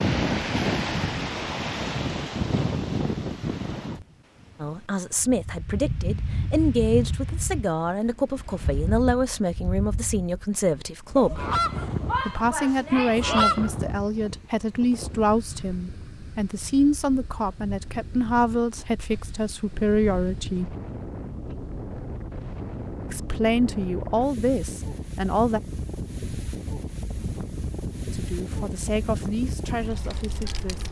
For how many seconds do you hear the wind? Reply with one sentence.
The wind can be heard for 31 seconds in total.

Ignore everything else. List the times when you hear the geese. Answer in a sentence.
The geese can be heard from 11.2 to 13.7 s.